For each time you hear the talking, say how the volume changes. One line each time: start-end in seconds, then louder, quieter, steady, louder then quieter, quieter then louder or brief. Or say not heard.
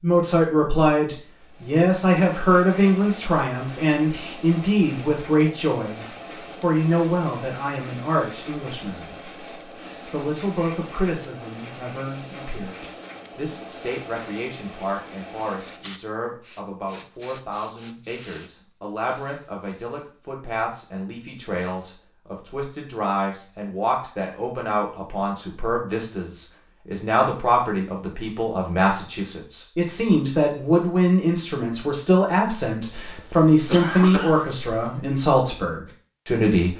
0.0-36.7 quieter then louder.